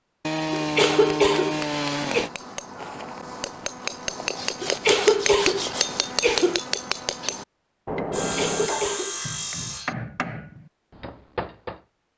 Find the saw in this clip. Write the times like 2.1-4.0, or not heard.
0.2-2.3, 4.3-6.0, 8.1-9.9.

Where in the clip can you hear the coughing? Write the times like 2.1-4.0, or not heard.
0.5-2.2, 4.6-6.6, 8.2-9.2.